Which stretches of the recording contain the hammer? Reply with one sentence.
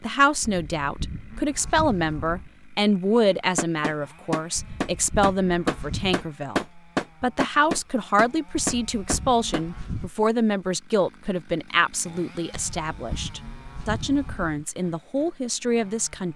You can hear the hammer from 3.5 to 9.7 s.